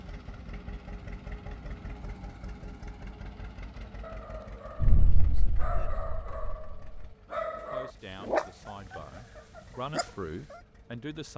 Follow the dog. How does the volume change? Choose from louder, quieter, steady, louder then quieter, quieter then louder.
louder then quieter.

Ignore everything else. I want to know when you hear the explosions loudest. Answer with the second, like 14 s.
5 s.